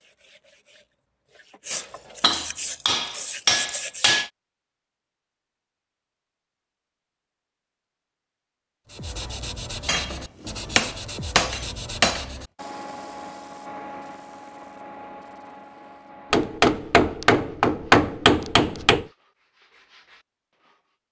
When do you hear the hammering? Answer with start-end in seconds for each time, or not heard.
1.7-4.3, 9.8-12.2, 16.3-19.1.